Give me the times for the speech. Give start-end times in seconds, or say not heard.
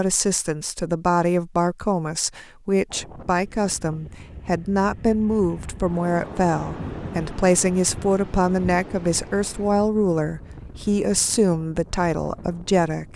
0.0-13.1.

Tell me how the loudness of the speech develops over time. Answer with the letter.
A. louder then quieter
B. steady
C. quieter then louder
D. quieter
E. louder
B.